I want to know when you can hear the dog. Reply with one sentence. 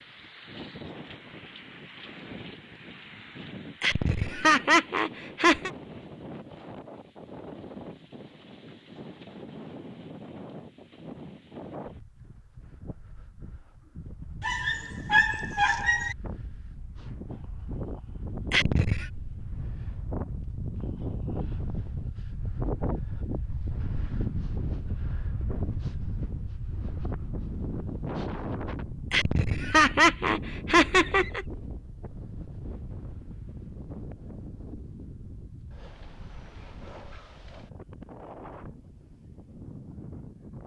The dog can be heard from 14.4 to 16.1 s.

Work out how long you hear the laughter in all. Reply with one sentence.
The laughter can be heard for 5 seconds in total.